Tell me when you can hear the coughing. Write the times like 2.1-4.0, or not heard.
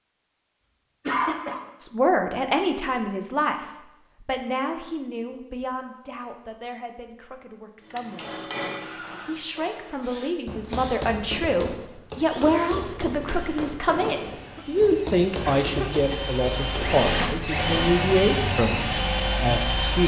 1.1-1.6, 14.4-16.4.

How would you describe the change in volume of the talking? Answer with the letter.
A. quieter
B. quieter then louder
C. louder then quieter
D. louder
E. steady
B.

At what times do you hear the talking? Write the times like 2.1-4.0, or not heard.
1.8-8.4, 9.2-20.0.